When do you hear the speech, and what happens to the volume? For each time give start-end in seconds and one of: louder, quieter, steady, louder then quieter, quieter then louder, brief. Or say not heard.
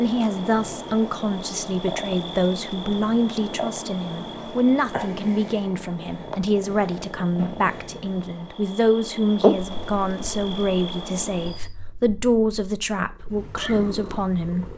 0.0-14.7 steady.